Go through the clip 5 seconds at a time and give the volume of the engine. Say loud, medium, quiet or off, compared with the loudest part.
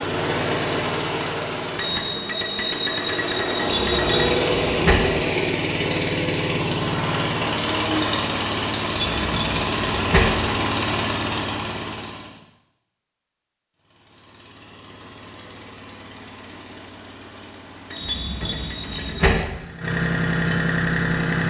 loud, loud, medium, quiet, loud.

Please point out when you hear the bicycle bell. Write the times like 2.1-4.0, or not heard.
1.8-4.3, 17.9-19.3.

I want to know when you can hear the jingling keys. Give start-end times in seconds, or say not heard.
3.6-5.0, 8.9-10.2, 17.9-19.4.